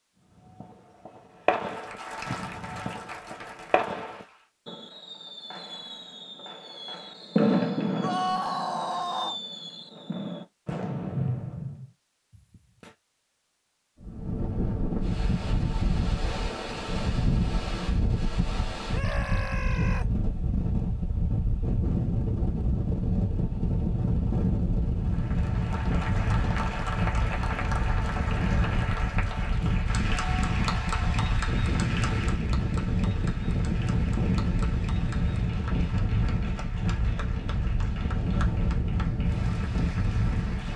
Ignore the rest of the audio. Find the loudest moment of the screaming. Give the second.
8 s.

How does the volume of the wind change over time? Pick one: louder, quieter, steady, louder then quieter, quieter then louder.
steady.